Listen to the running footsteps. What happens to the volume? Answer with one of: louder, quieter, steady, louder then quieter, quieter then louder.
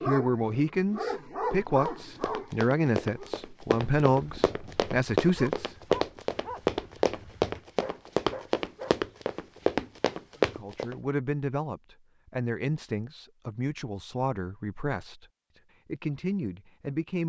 louder.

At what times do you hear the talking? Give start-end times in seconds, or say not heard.
0.1-5.8, 10.4-15.2, 15.8-17.2.